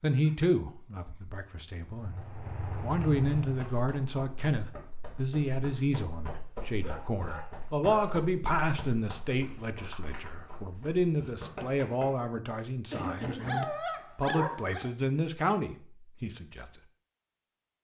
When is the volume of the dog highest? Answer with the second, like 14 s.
14 s.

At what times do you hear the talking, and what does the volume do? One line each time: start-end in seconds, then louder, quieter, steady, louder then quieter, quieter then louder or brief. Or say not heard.
0.0-2.2 brief
2.8-16.7 steady.